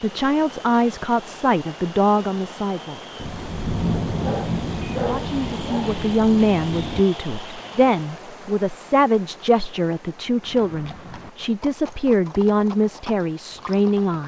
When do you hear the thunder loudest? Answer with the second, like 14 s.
4 s.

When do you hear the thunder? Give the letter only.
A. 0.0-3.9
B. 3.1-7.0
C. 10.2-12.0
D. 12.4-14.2
B.